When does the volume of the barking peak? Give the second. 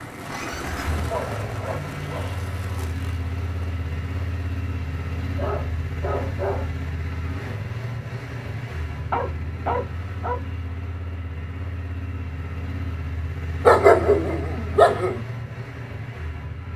14 s.